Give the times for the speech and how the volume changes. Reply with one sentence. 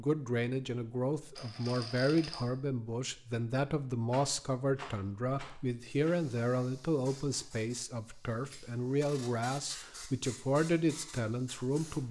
The speech can be heard from 0.0 to 12.0 s, at a steady volume.